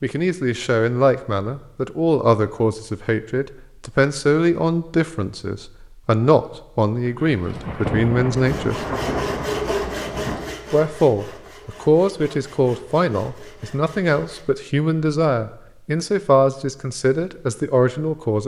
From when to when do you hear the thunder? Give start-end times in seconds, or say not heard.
7.3-10.6.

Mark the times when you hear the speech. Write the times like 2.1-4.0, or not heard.
0.0-8.8, 10.7-18.4.